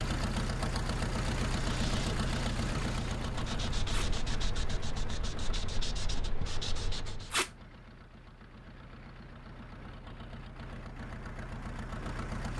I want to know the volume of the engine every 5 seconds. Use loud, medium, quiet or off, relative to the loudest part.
loud, quiet, medium.